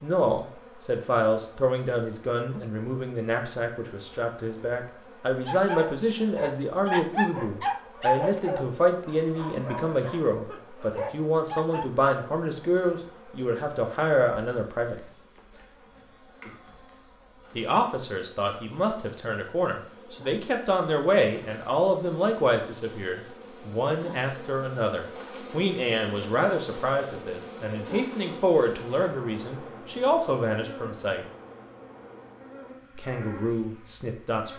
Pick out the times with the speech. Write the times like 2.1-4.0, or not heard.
0.0-15.0, 17.6-31.2, 33.0-34.5.